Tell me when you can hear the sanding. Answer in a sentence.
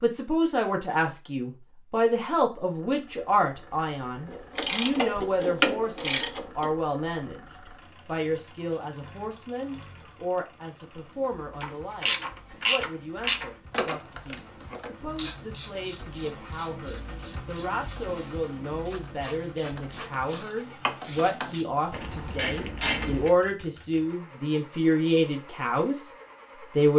The sanding can't be heard in this clip.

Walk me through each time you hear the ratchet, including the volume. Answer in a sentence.
The ratchet can be heard briefly from 4.2 to 6.8 s; and from 11.6 to 23.3 s, getting quieter then louder.